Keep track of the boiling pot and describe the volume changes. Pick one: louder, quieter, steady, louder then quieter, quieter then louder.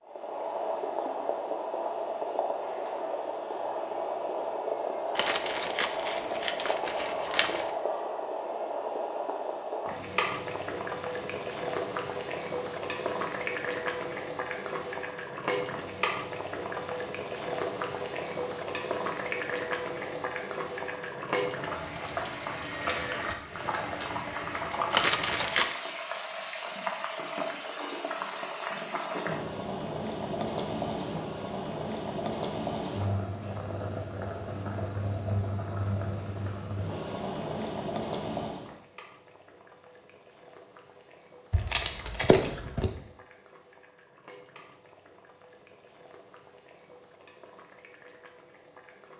quieter.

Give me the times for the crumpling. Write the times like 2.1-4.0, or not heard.
5.2-7.7, 24.9-25.8, 41.5-42.9.